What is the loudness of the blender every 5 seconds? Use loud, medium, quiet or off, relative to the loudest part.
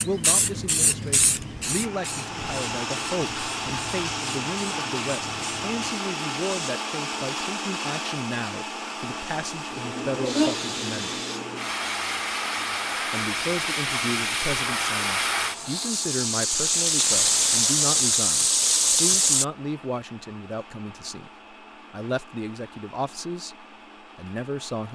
loud, loud, medium, quiet, quiet.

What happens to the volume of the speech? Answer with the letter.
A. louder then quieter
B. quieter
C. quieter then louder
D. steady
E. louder
D.